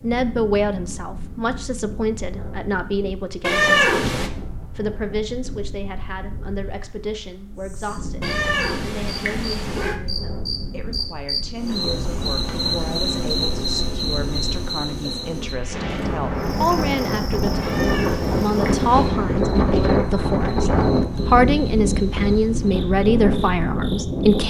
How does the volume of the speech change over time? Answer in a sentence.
The loudness of the speech goes down, then up.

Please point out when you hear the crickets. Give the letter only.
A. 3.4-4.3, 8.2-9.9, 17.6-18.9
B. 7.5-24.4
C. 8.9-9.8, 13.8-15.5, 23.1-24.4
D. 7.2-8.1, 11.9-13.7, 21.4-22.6
B.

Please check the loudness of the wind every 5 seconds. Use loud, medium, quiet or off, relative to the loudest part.
quiet, quiet, quiet, loud, loud.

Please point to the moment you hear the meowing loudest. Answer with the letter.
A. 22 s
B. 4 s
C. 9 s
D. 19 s
B.